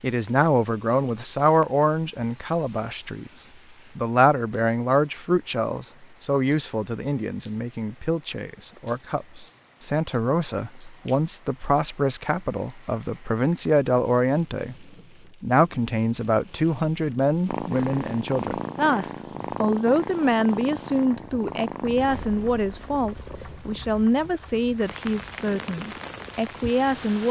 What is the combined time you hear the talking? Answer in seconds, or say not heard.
27 s.